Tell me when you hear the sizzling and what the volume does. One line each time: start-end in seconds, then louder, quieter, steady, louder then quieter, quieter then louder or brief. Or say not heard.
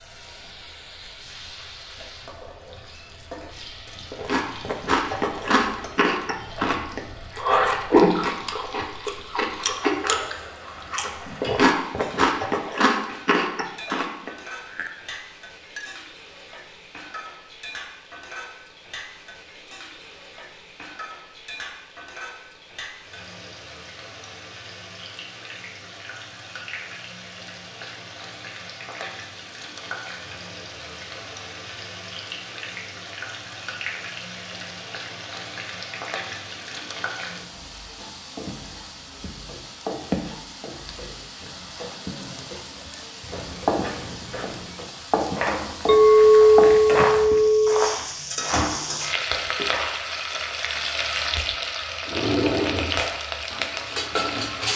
0.0-54.7 louder.